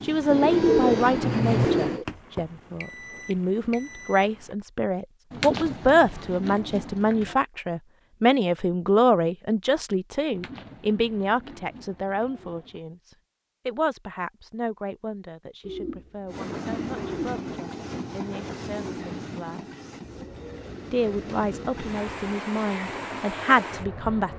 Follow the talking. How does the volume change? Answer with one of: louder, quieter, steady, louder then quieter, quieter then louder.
quieter then louder.